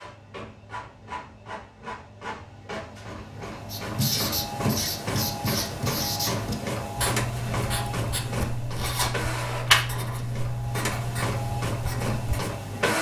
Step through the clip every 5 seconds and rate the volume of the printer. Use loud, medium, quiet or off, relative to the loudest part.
medium, loud, loud.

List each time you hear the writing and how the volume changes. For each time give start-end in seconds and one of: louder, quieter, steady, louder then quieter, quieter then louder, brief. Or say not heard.
3.7-12.6 steady.